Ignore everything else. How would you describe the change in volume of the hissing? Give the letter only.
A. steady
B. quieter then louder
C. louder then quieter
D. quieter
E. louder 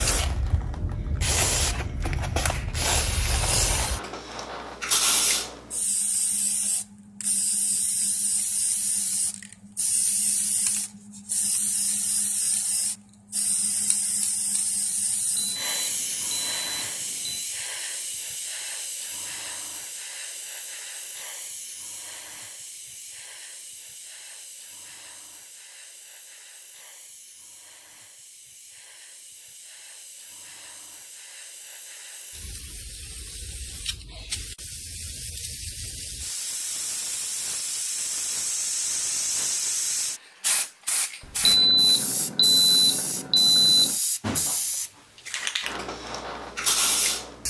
B.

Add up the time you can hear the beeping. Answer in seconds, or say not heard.
5 s.